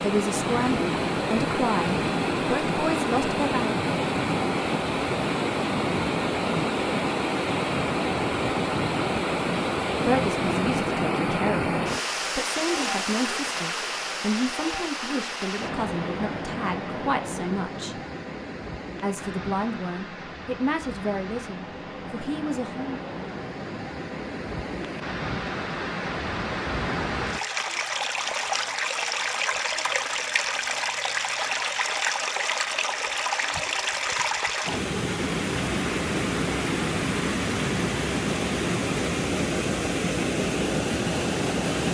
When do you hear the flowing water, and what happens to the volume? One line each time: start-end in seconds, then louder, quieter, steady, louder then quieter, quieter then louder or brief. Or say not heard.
0.0-41.8 quieter then louder.